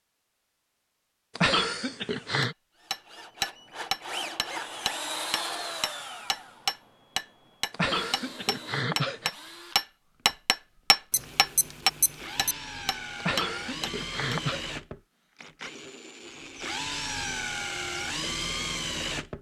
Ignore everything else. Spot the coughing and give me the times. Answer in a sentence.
You can hear the coughing from 1.4 to 2.5 s, from 7.7 to 9.3 s and from 13.2 to 14.6 s.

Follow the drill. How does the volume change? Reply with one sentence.
The loudness of the drill goes down, then up.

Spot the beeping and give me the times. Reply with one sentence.
The beeping can be heard from 11.1 to 12.6 s.